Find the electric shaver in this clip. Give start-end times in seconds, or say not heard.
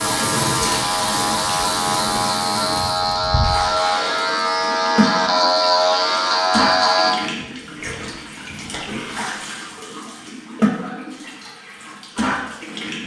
0.0-7.2.